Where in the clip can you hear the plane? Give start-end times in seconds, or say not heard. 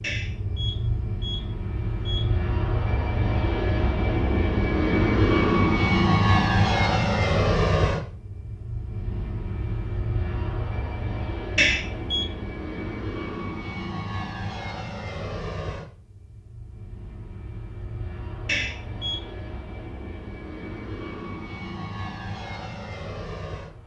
0.0-23.8.